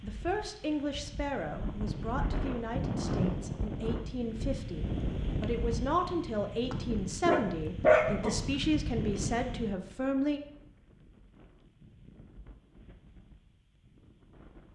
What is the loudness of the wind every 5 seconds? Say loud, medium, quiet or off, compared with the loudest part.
loud, loud, quiet.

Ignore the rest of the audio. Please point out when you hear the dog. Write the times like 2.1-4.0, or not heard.
6.7-8.4.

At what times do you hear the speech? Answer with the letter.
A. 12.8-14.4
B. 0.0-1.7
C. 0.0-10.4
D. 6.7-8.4
C.